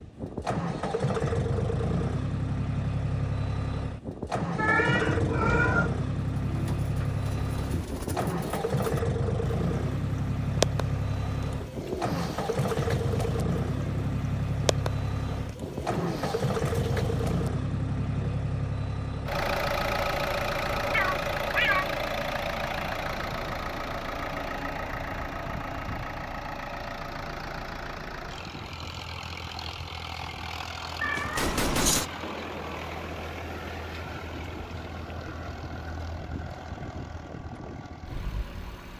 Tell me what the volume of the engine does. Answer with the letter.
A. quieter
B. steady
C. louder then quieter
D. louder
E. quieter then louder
A.